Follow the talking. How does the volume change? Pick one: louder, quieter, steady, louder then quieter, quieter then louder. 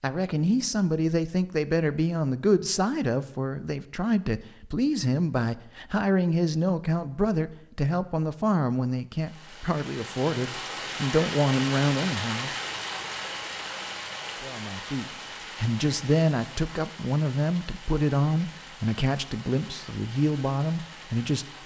steady.